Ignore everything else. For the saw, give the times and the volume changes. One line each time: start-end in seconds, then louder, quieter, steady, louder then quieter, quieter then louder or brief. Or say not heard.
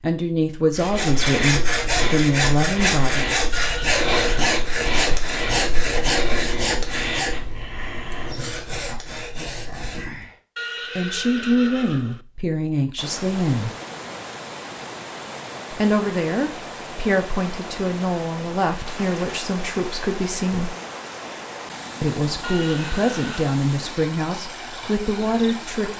0.7-10.3 quieter.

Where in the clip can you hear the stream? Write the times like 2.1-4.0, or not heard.
12.9-25.9.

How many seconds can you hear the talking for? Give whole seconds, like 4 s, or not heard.
15 s.